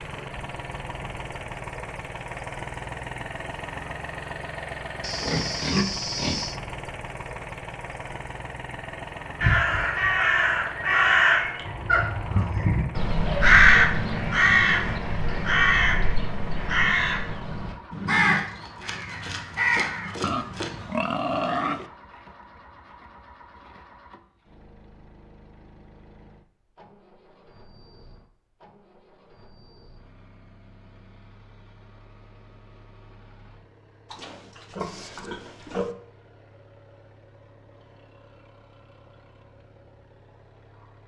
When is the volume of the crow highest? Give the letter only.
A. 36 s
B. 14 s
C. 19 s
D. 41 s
B.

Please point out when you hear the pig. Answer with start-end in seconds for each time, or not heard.
5.0-6.6, 20.2-21.9, 34.1-36.0.